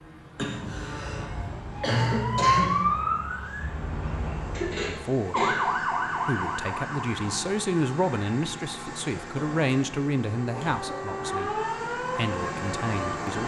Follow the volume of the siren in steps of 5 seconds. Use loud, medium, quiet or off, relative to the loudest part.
loud, loud, medium.